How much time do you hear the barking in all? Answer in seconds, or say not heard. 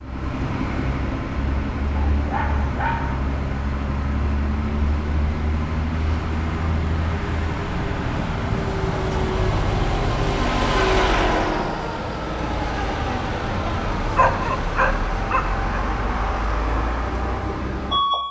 3 s.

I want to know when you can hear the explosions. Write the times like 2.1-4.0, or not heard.
not heard.